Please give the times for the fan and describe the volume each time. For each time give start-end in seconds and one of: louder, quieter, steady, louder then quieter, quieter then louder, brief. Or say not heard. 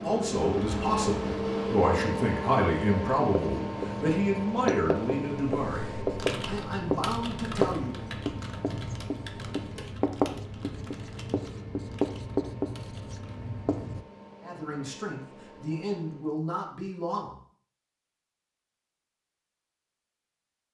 0.0-16.4 quieter.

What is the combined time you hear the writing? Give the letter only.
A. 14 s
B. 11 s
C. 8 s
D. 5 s
B.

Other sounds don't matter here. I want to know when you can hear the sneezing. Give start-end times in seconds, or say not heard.
not heard.